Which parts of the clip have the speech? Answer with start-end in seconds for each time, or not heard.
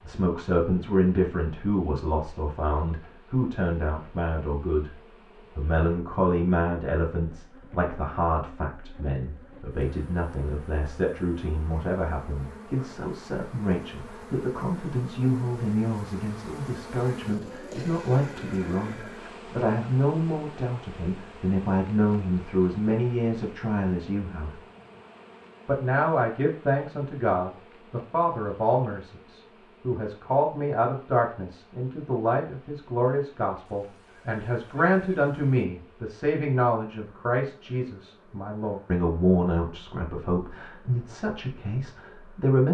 0.0-5.0, 5.5-24.6, 25.6-42.7.